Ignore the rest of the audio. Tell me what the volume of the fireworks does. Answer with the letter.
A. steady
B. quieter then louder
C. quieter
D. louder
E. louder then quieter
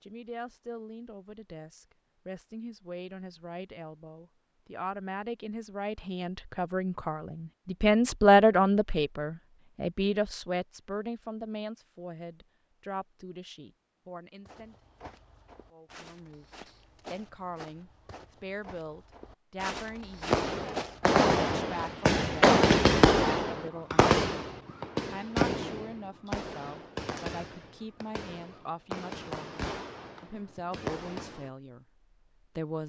C.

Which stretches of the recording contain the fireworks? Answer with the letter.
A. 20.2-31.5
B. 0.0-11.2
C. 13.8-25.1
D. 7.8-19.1
A.